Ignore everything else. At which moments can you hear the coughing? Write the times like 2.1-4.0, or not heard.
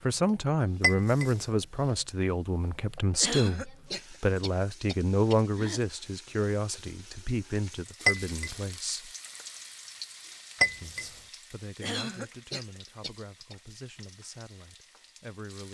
3.2-5.8, 11.8-13.6.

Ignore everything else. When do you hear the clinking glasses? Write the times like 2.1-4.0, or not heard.
0.8-1.4, 8.1-8.6, 10.6-11.1.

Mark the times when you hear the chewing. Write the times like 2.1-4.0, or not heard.
not heard.